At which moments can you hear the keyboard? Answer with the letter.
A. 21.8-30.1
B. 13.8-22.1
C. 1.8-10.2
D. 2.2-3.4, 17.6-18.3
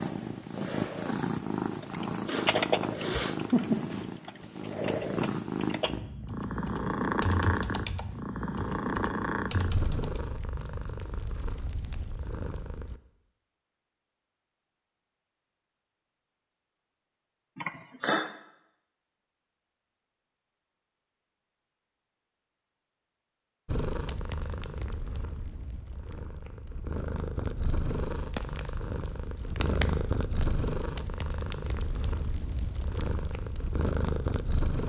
C.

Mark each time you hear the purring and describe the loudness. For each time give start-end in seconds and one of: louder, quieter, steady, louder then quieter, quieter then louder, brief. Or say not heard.
0.0-13.0 quieter
23.6-34.8 louder.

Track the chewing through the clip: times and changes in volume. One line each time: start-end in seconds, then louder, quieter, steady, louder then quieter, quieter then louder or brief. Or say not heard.
not heard.